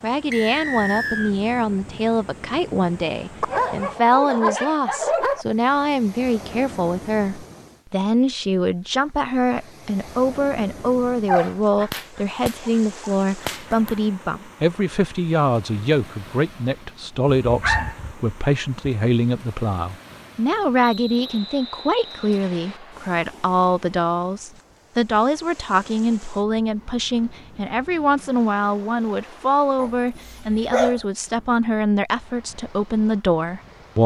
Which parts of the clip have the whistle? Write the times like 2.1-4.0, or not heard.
0.3-1.4, 20.8-22.8.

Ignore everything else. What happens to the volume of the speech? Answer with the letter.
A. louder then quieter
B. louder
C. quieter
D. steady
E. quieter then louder
D.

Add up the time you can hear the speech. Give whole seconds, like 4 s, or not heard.
34 s.